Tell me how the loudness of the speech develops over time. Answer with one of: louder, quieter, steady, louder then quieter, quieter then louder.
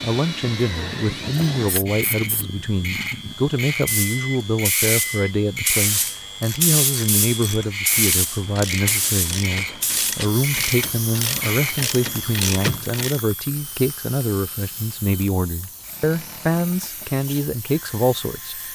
steady.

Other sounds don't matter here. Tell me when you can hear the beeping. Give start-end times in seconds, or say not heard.
3.9-5.3.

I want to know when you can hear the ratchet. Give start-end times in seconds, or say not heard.
6.0-13.2.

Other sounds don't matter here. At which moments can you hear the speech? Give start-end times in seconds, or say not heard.
0.0-18.6.